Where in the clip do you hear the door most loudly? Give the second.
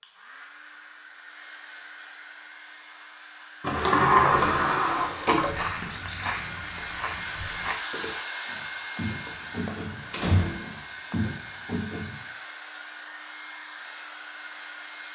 4 s.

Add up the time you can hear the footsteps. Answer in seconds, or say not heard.
7 s.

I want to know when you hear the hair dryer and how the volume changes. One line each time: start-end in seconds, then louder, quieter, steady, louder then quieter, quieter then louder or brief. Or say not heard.
0.0-15.1 louder then quieter.